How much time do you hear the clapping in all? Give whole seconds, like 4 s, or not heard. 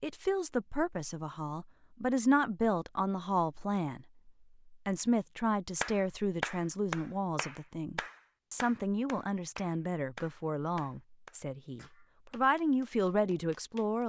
8 s.